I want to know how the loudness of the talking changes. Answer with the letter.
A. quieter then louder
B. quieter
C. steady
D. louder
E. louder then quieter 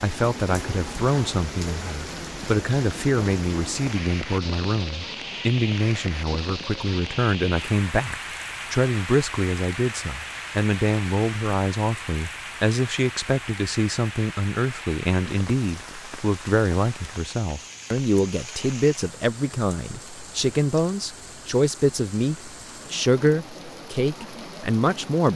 C.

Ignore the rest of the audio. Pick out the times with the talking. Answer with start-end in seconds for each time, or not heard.
0.0-25.3.